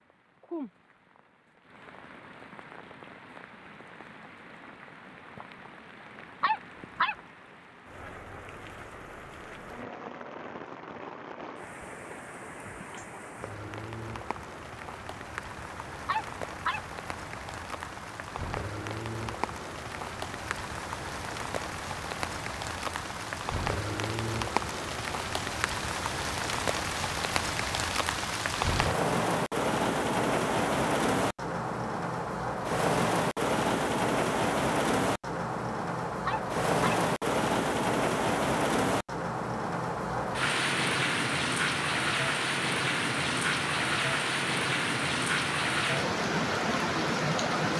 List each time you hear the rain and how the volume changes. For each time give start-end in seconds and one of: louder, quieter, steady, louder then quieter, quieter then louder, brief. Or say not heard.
0.0-47.7 louder.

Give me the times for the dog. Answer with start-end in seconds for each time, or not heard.
6.4-7.2, 16.1-16.8, 36.2-37.0.